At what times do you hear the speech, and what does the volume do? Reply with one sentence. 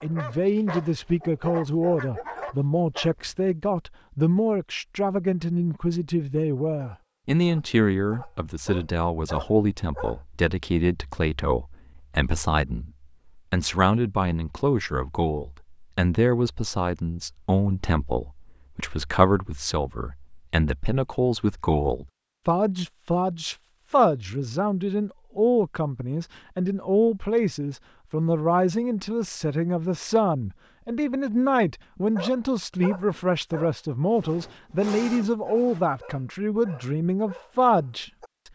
You can hear the speech from 0.0 to 38.5 s, at a steady volume.